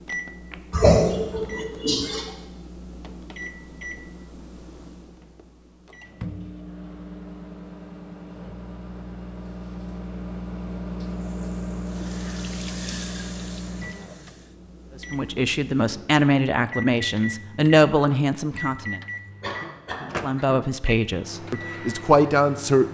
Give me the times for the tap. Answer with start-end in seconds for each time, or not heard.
11.2-14.6.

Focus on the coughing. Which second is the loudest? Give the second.
1 s.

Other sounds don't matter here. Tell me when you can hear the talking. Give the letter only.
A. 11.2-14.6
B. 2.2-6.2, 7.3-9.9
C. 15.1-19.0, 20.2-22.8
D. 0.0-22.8
C.